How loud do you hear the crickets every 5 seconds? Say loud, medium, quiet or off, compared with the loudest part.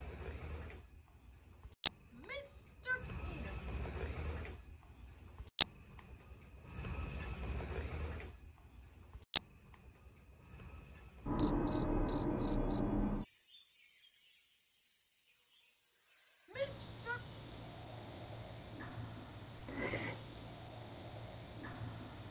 medium, loud, medium, quiet, quiet.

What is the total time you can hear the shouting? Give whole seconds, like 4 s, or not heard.
2 s.